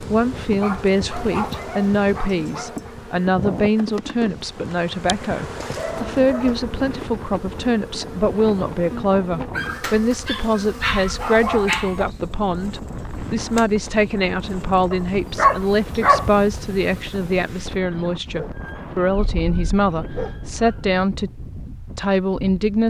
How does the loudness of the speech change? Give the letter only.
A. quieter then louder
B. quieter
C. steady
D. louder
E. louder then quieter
C.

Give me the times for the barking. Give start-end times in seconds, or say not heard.
0.4-2.9, 5.5-6.5, 9.6-12.1, 14.9-16.2, 18.3-20.9.